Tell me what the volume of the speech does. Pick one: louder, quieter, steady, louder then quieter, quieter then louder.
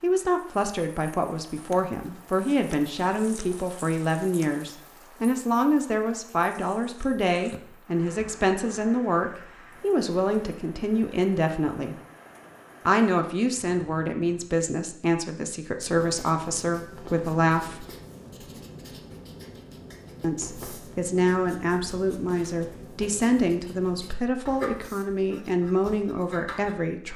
steady.